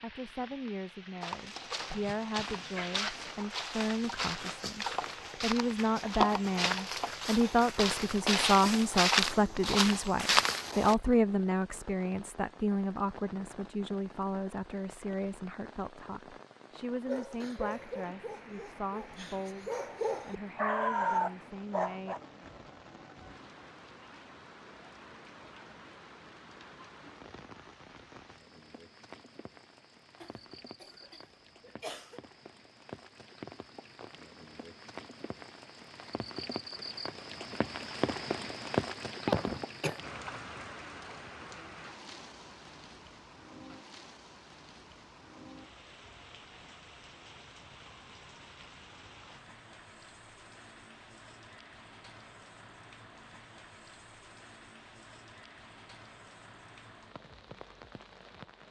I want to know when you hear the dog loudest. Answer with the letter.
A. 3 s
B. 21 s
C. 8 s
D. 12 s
B.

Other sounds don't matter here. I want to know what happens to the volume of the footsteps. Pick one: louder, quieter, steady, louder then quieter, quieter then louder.
louder.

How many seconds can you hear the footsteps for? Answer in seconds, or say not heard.
10 s.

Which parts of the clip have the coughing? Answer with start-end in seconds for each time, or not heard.
1.8-3.1, 30.2-32.2, 39.2-40.0.